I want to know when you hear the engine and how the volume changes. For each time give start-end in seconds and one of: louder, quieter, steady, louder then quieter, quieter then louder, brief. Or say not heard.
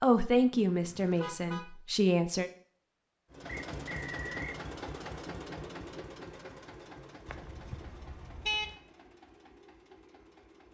3.3-10.6 quieter.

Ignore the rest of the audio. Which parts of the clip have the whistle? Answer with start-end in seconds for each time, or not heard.
3.5-4.6.